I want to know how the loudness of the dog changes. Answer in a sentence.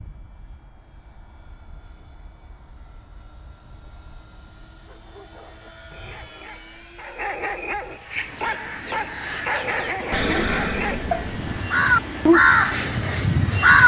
The volume of the dog goes up.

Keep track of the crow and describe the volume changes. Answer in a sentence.
The loudness of the crow goes up.